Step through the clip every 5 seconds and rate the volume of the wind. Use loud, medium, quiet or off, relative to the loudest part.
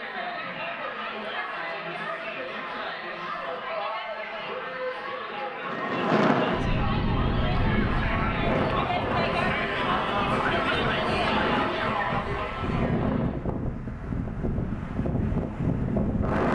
off, loud, loud, loud.